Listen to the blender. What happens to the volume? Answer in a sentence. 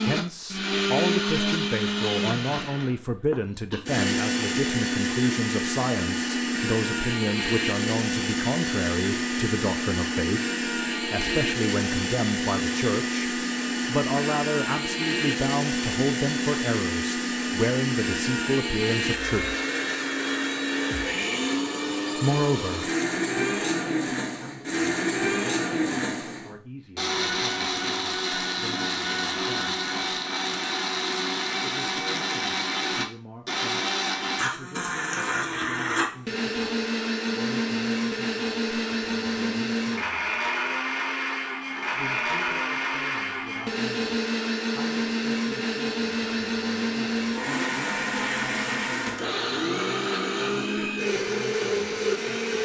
The volume of the blender stays about the same.